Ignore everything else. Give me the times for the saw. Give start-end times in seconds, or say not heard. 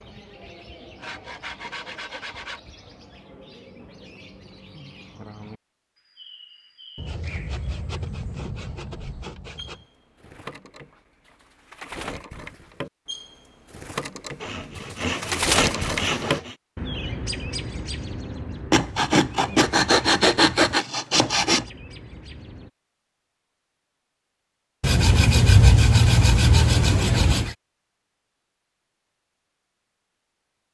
1.0-2.6, 7.0-9.8, 14.4-16.6, 18.7-21.6, 24.8-27.6.